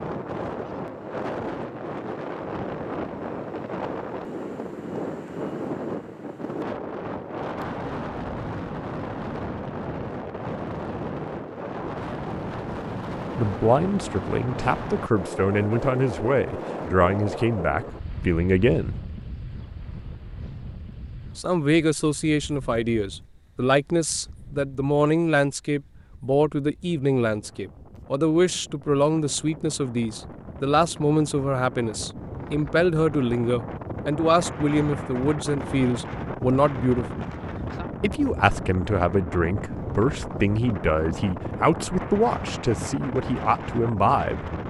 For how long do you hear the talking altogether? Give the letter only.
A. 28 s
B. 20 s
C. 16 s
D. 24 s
A.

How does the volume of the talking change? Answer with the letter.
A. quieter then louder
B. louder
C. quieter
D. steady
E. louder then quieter
D.